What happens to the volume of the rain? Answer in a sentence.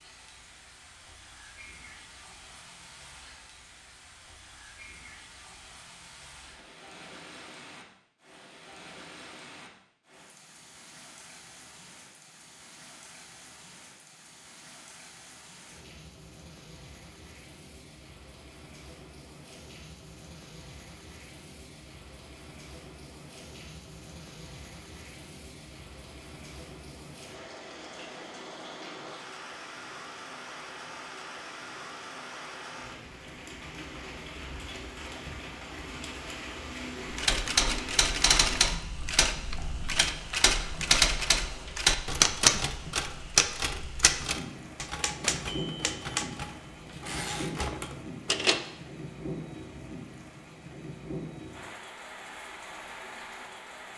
The loudness of the rain goes up.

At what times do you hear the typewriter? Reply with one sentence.
The typewriter can be heard from 37.1 to 48.6 s.